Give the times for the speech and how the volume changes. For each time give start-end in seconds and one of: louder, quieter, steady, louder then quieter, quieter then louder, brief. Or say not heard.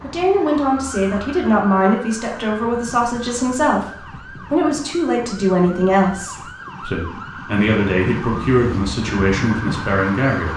0.0-10.5 steady.